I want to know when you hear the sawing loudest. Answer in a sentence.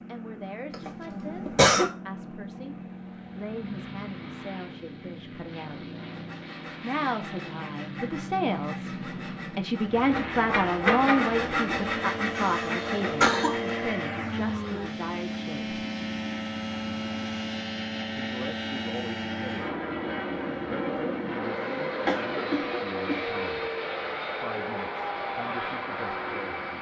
The volume of the sawing peaks at 11 seconds.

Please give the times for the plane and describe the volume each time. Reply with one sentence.
You can hear the plane from 0.0 to 26.7 s, getting louder.